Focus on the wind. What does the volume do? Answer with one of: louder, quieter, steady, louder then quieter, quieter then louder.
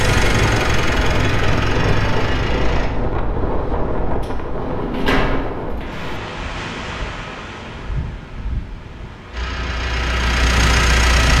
quieter.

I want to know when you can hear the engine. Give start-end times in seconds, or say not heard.
0.0-2.9, 9.3-11.3.